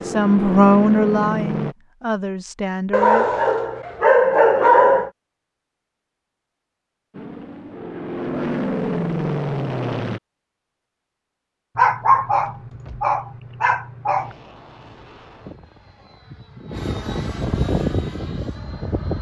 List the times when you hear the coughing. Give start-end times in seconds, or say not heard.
not heard.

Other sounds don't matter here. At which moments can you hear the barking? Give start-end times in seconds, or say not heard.
2.9-5.1, 11.8-14.3.